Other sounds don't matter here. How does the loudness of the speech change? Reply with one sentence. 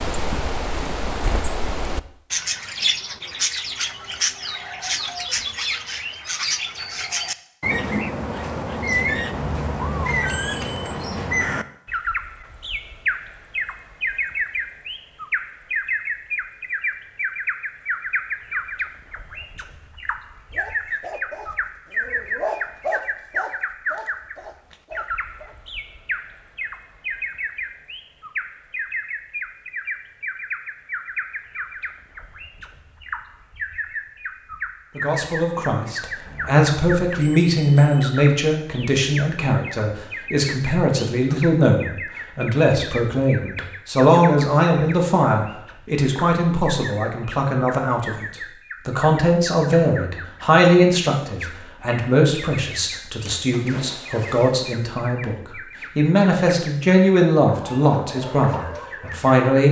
The volume of the speech stays about the same.